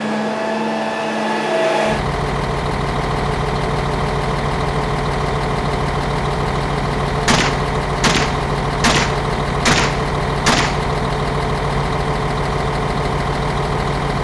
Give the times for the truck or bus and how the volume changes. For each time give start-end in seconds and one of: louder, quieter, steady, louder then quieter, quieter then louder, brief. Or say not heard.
0.0-14.1 steady.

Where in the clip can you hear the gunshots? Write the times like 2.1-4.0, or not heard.
7.2-10.8.